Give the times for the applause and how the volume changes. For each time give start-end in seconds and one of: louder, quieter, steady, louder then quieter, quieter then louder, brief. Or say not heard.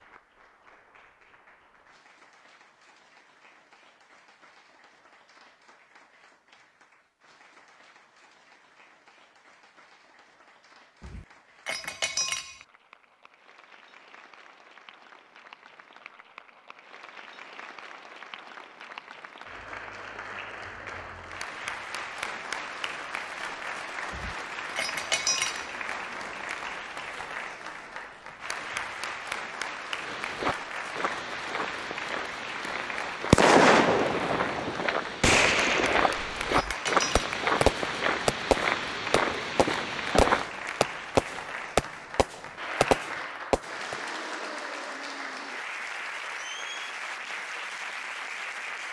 0.0-48.8 louder.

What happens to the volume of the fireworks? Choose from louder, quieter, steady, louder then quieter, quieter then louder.
quieter.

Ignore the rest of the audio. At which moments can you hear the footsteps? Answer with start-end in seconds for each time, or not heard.
30.0-40.5.